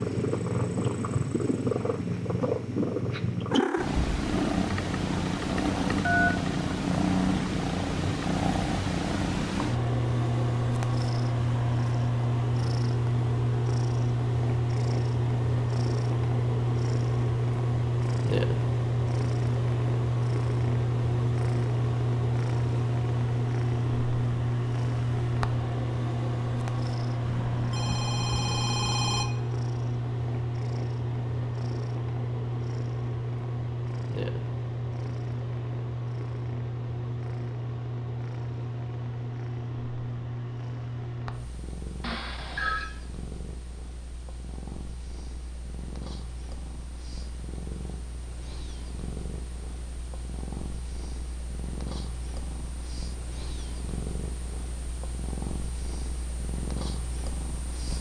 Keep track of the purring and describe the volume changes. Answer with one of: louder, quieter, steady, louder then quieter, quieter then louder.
quieter.